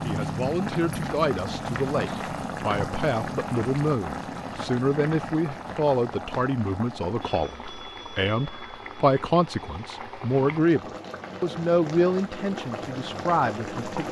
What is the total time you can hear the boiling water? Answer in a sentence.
You can hear the boiling water for 14 seconds altogether.